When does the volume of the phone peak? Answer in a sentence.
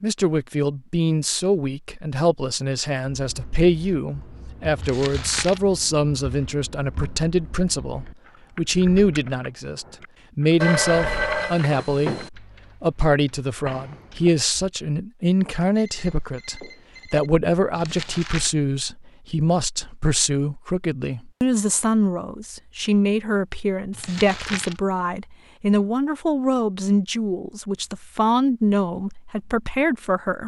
The loudest moment of the phone is at 11 seconds.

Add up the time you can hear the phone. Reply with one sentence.
The phone can be heard for 3 seconds in total.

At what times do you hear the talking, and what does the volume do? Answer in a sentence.
The talking can be heard from 0.0 to 30.4 s, at a steady volume.